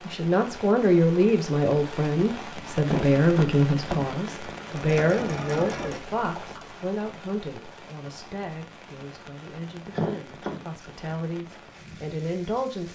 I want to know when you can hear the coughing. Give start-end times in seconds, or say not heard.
2.9-4.0, 9.9-10.6.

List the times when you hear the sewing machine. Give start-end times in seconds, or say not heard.
4.7-6.8.